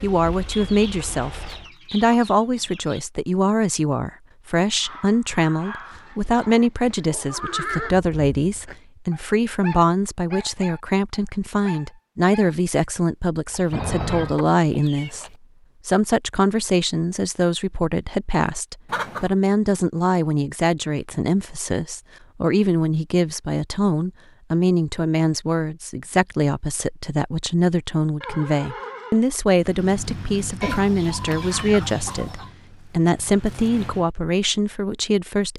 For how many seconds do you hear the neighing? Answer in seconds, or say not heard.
4 s.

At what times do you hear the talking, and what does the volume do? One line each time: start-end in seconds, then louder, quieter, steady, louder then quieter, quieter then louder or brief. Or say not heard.
0.0-15.2 steady
15.8-35.5 steady.